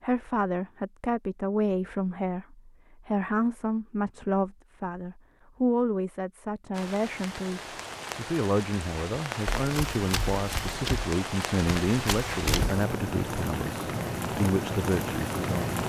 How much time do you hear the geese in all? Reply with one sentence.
The geese can't be heard in this clip.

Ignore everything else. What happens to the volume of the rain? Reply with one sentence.
The loudness of the rain goes up.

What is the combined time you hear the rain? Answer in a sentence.
The rain can be heard for 9 seconds in total.